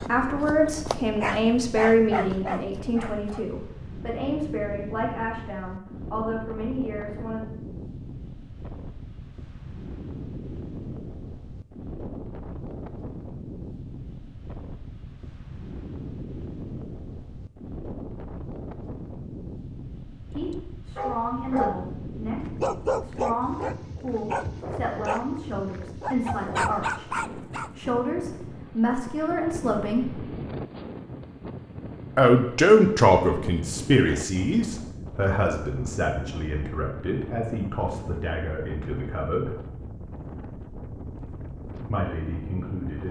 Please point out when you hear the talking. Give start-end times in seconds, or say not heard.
0.0-7.5, 20.3-30.2, 32.1-39.6, 41.9-43.0.